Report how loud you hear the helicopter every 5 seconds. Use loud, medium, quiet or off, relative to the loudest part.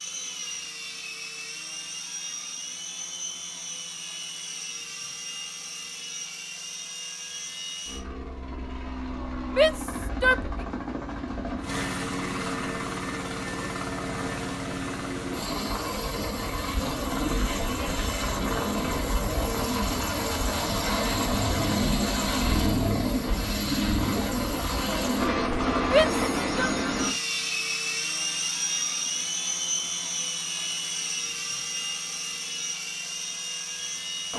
medium, medium, medium, loud, loud, loud, medium.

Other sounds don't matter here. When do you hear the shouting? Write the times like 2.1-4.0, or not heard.
9.6-10.5, 25.9-26.7.